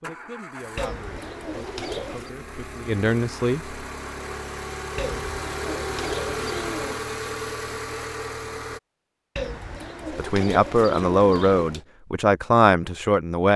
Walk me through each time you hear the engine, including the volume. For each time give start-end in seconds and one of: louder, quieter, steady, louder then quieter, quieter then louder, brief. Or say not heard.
0.0-8.8 louder.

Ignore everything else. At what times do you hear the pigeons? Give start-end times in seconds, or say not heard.
0.8-2.3, 5.0-7.0, 9.3-11.8.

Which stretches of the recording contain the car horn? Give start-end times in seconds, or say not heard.
not heard.